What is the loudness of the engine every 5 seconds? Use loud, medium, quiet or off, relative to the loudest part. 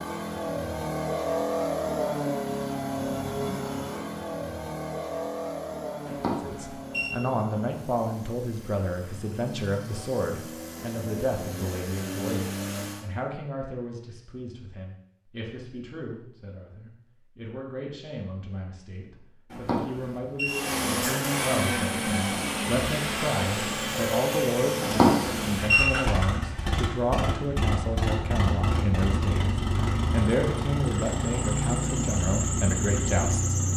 loud, medium, medium, off, loud, loud, loud.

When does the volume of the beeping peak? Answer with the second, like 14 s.
25 s.